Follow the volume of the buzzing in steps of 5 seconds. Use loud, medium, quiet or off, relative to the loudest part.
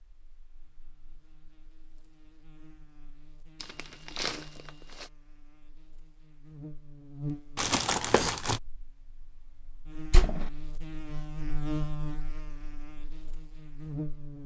quiet, medium, loud.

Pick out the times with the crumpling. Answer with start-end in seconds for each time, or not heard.
3.6-5.1, 7.5-8.6.